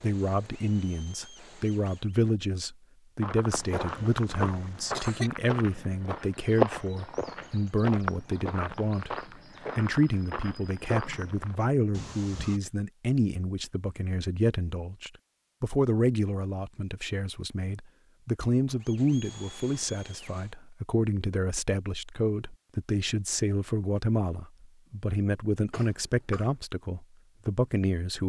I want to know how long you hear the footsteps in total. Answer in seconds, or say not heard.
8 s.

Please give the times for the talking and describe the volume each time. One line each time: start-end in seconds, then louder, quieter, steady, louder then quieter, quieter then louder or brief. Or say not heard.
0.0-28.2 steady.